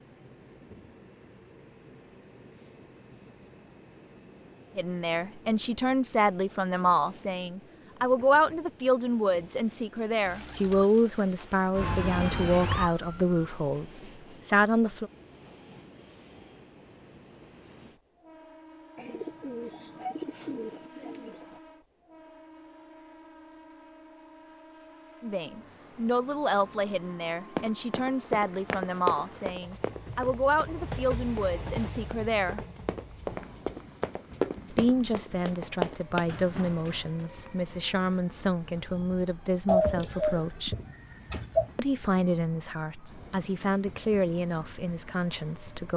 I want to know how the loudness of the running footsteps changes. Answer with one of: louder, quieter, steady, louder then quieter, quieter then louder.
quieter then louder.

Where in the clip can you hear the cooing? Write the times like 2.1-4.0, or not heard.
10.2-11.7, 18.9-21.6, 39.6-41.7.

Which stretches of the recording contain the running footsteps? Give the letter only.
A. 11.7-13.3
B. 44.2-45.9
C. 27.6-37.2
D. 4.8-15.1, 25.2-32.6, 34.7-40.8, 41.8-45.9
C.